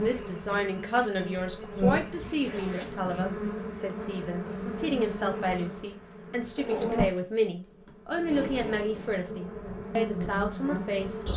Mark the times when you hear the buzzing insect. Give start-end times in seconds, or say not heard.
0.0-7.2, 8.1-11.3.